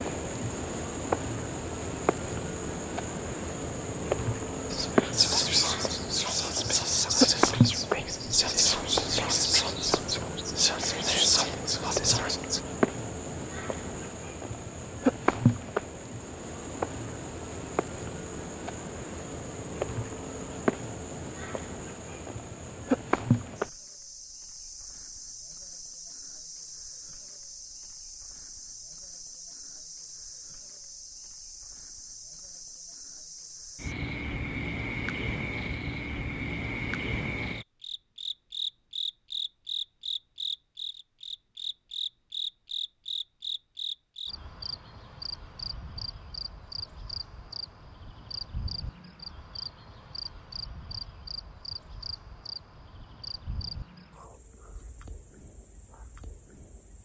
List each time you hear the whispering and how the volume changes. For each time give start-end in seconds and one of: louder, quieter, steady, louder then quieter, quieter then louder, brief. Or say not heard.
4.7-12.6 steady.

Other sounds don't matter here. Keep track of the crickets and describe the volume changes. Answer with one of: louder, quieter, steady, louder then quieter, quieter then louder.
quieter.